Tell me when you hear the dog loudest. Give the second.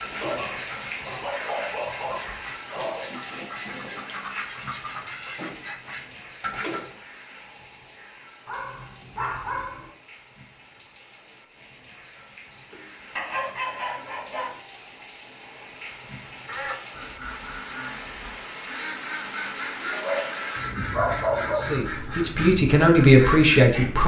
21 s.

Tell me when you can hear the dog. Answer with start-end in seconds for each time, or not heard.
0.2-3.1, 8.4-9.9, 12.7-14.6, 19.9-21.8.